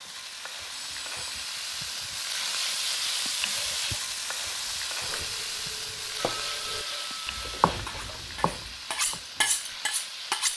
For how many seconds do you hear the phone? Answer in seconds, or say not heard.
3 s.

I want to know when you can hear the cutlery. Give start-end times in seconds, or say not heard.
7.8-10.5.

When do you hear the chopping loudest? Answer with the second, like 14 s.
8 s.